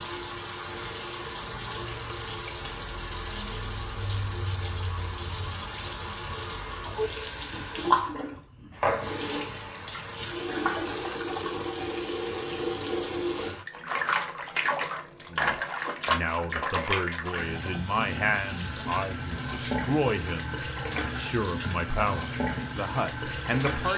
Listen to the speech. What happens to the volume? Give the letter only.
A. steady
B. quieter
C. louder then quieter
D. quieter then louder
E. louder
A.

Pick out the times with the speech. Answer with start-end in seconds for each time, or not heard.
15.3-23.9.